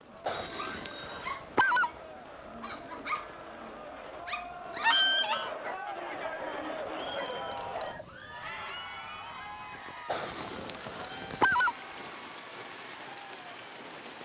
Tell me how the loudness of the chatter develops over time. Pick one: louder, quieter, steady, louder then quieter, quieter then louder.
louder then quieter.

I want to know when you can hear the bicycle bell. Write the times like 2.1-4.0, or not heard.
0.3-1.4, 7.0-8.0, 10.2-11.3.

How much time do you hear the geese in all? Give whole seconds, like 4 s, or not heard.
5 s.